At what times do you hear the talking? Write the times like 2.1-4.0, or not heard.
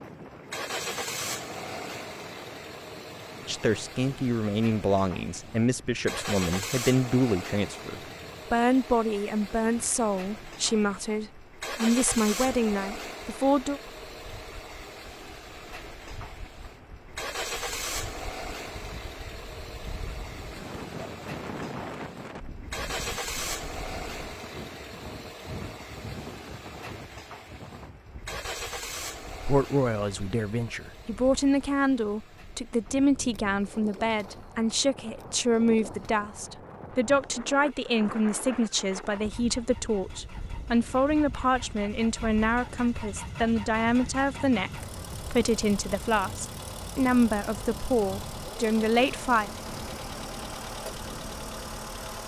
3.5-13.8, 29.4-49.5.